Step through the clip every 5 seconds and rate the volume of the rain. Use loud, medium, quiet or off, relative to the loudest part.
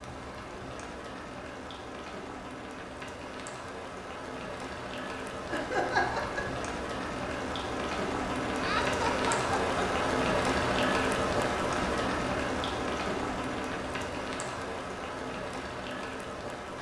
medium, loud, loud, medium.